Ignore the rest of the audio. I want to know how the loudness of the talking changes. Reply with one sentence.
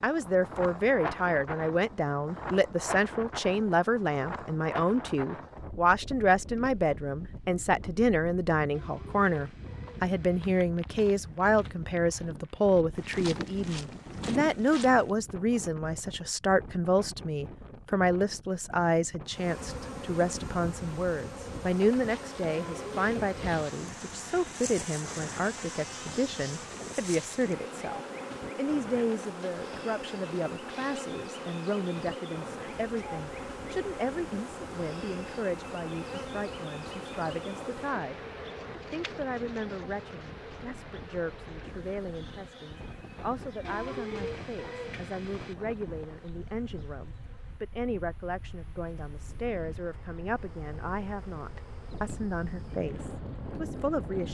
The volume of the talking goes down.